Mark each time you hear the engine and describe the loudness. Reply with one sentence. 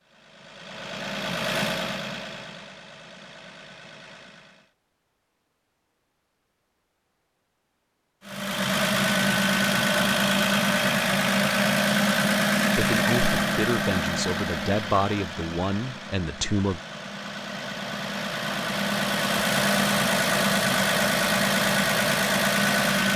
You can hear the engine from 0.0 to 4.7 s, getting louder then quieter; and from 8.2 to 23.1 s, getting quieter then louder.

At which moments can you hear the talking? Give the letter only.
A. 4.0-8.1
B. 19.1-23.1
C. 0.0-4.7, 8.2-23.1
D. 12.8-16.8
D.